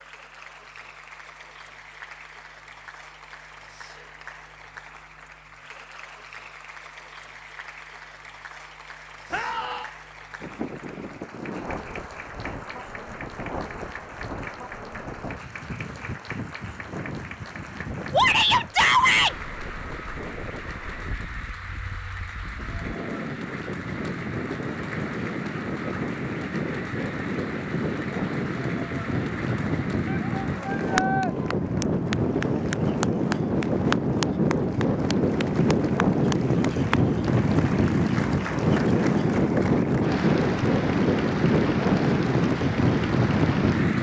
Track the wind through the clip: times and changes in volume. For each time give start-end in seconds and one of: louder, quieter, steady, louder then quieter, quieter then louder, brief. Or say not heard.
10.4-43.9 louder.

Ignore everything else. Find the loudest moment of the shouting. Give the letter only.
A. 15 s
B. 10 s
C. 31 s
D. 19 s
D.